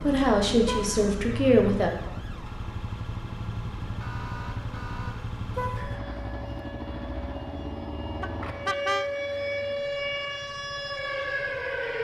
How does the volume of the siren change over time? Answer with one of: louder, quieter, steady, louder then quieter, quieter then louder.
louder.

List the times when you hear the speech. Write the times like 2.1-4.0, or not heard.
0.0-1.9.